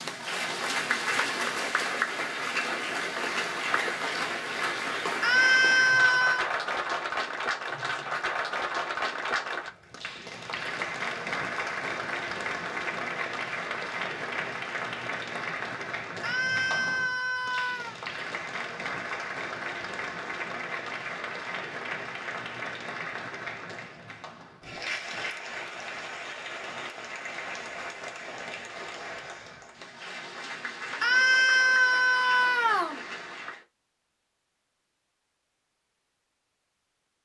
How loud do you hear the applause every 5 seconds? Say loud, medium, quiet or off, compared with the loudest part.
loud, loud, loud, medium, medium, medium, medium, off.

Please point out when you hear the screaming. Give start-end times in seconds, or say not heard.
5.2-6.5, 16.2-17.9, 31.0-33.0.